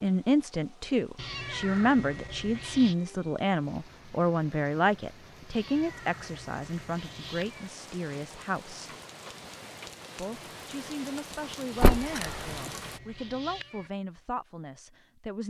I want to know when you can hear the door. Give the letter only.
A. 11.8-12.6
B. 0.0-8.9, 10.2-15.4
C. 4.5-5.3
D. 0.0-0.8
A.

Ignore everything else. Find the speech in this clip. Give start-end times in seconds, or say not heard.
0.0-8.9, 10.2-15.4.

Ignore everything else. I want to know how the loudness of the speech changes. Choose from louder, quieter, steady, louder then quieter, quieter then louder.
quieter.